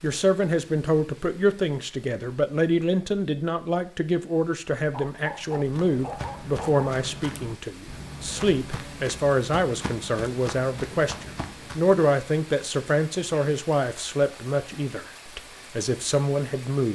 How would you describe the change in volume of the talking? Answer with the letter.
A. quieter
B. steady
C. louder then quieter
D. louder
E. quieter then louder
B.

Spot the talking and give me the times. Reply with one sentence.
The talking can be heard from 0.0 to 16.9 s.